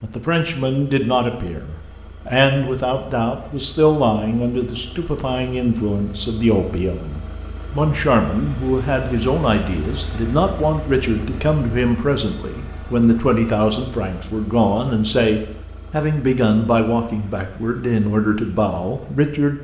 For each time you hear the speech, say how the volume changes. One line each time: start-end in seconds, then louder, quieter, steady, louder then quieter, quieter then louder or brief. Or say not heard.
0.0-19.6 steady.